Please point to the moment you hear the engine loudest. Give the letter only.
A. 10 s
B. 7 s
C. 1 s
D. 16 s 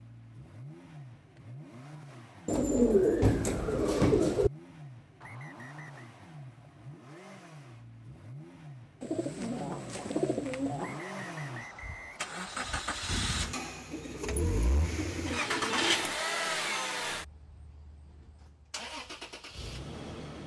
D.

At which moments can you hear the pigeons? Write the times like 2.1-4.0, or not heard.
2.5-4.5, 9.0-11.0, 13.9-16.1.